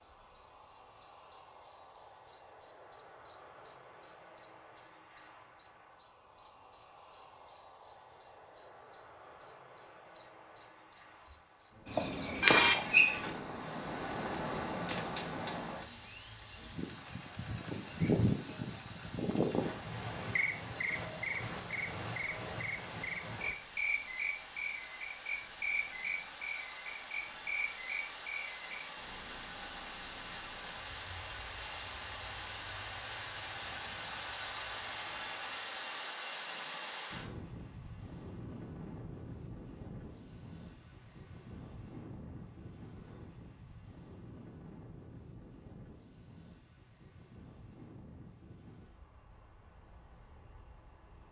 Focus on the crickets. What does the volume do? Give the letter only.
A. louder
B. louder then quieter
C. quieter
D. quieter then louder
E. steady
C.